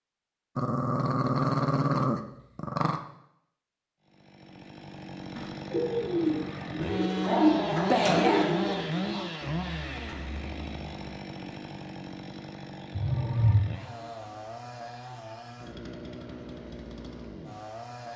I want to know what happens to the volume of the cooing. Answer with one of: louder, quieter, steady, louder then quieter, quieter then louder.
quieter.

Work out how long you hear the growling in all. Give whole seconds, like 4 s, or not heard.
5 s.